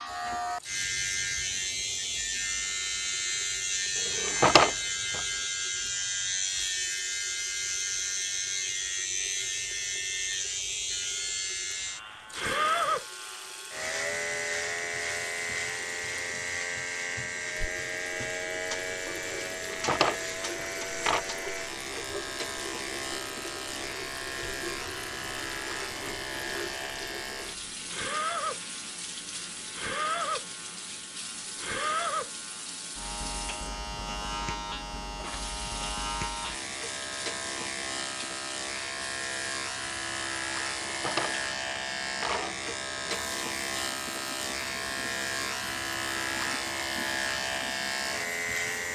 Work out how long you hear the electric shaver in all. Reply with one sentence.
The electric shaver can be heard for 49 seconds in total.